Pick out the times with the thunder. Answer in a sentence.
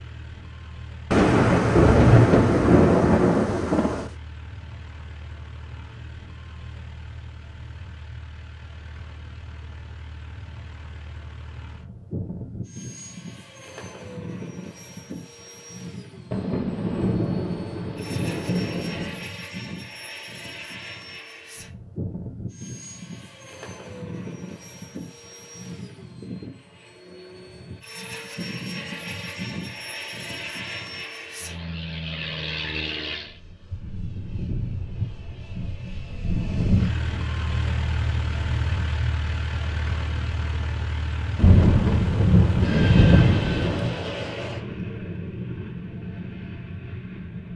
You can hear the thunder from 1.1 to 4.1 s, from 16.3 to 19.3 s and from 41.4 to 44.0 s.